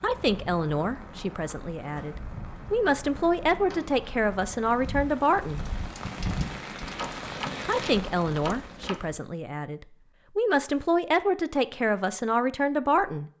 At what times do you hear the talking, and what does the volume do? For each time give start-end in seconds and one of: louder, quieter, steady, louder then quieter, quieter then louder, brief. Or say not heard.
0.0-5.7 quieter then louder
7.7-13.3 quieter then louder.